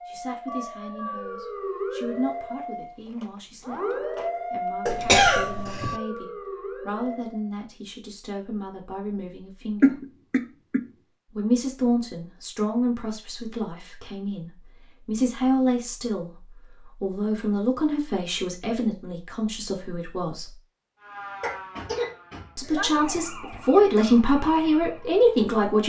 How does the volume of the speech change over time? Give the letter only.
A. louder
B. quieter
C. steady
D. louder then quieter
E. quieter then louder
A.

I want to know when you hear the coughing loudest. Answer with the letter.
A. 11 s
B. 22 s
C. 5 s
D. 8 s
C.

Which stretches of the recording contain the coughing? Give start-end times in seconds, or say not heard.
4.8-6.0, 9.8-10.8, 21.4-22.9.